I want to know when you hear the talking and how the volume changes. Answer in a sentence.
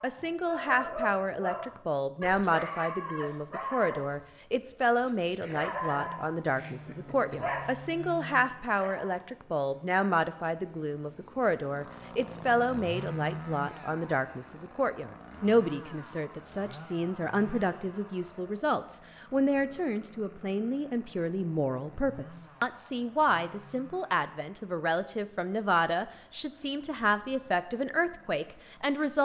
The talking can be heard from 0.0 to 29.2 s, at a steady volume.